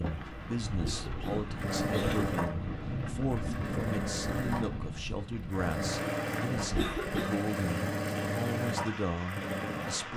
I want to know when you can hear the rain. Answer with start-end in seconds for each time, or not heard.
0.0-10.1.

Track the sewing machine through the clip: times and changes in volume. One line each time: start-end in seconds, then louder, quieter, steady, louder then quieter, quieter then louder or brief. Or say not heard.
0.0-10.1 steady.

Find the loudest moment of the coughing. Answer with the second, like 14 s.
7 s.